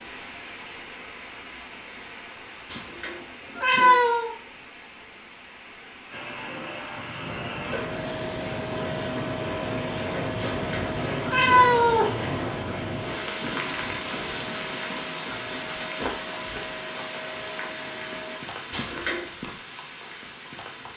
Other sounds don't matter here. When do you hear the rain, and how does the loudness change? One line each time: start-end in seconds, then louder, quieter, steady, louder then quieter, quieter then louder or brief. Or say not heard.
0.0-20.9 louder then quieter.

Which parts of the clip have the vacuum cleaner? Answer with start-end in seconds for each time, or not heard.
6.1-18.4.